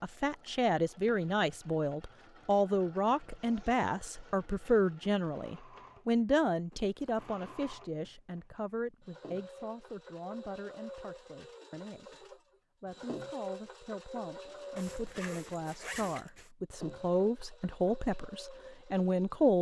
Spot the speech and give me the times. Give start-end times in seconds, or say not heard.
0.0-19.5.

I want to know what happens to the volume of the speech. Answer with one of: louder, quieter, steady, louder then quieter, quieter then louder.
quieter then louder.